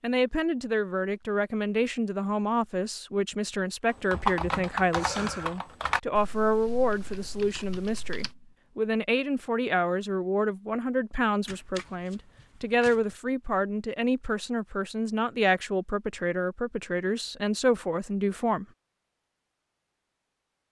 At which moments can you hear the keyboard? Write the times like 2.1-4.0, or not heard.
3.9-8.3.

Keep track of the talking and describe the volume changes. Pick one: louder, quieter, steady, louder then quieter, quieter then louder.
steady.